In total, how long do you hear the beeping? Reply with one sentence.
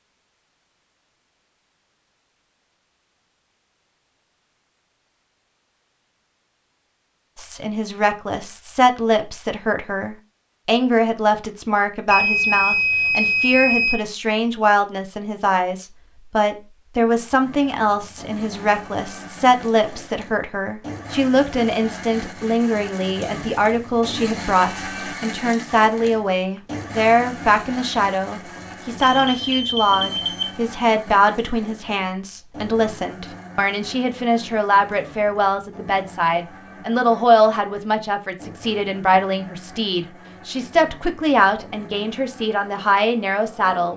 The beeping can be heard for 3 seconds in total.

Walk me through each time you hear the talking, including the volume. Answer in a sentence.
The talking can be heard from 7.3 to 43.9 s, at a steady volume.